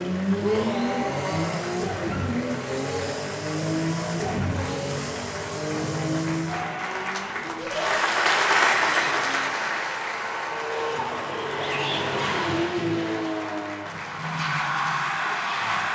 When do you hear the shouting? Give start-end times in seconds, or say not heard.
0.4-1.7, 7.5-8.0, 11.6-12.4.